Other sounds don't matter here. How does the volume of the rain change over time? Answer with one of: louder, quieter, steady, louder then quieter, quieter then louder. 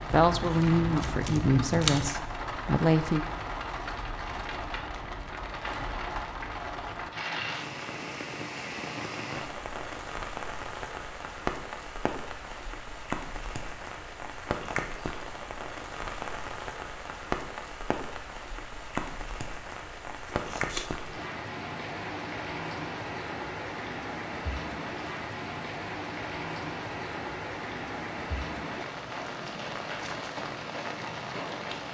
steady.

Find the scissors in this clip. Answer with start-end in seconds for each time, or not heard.
0.1-2.1, 20.2-20.9.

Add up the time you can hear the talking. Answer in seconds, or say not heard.
3 s.